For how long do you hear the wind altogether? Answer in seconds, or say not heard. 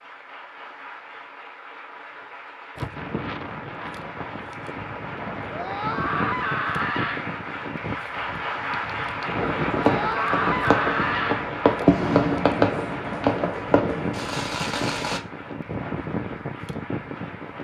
15 s.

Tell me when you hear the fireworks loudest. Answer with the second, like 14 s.
12 s.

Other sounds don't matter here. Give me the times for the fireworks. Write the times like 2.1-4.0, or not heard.
9.4-15.2.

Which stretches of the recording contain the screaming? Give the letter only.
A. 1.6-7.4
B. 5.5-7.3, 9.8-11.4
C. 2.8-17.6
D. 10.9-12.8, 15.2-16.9
B.